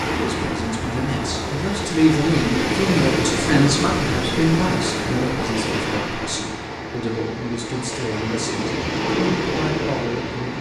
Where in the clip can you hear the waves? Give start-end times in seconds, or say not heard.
0.0-10.5.